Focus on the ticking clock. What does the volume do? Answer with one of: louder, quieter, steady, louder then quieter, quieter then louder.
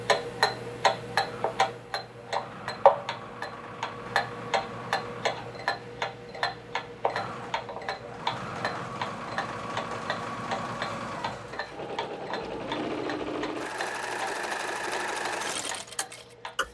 quieter.